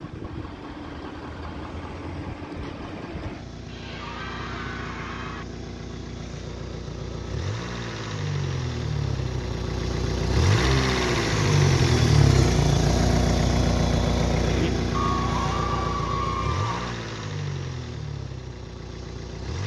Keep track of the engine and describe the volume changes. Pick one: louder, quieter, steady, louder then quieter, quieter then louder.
louder then quieter.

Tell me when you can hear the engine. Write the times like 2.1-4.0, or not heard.
0.0-19.6.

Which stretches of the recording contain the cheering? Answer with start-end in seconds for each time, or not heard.
3.6-5.5, 14.9-16.9.